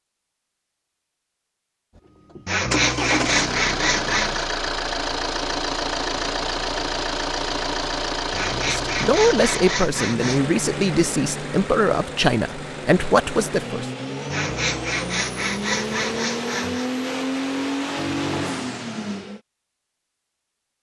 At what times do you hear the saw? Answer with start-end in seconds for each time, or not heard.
2.5-4.5, 8.3-10.4, 14.3-16.9.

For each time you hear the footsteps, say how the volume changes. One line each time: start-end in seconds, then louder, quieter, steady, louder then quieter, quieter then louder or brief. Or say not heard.
not heard.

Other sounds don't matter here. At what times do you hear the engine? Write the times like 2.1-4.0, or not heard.
1.9-19.4.